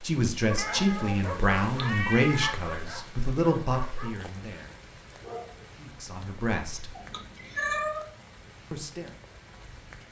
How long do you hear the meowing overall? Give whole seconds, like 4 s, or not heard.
3 s.